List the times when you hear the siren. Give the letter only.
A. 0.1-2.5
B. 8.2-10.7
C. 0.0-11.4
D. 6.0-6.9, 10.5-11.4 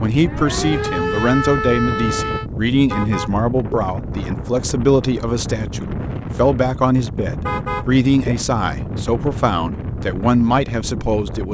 A.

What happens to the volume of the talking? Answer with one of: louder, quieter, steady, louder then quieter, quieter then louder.
steady.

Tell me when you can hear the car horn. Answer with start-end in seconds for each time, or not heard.
2.9-3.8, 7.4-8.3.